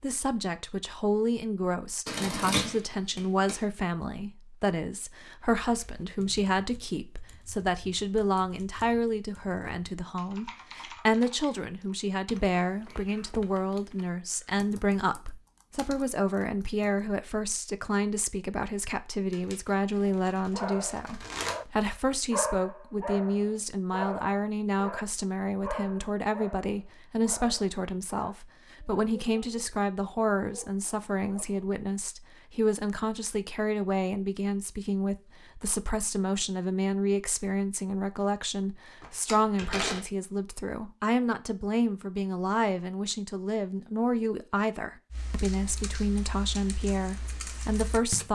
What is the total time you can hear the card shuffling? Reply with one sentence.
The card shuffling can be heard for 5 seconds in total.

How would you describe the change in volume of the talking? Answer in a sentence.
The loudness of the talking stays about the same.